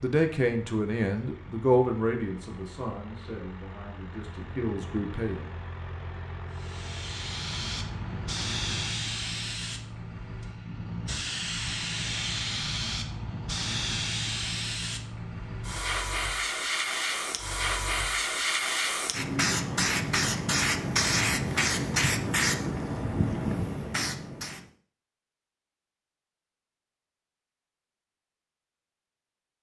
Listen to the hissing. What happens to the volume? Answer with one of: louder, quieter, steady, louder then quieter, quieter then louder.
louder.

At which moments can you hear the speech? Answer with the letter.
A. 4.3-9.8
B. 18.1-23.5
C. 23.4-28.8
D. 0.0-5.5
D.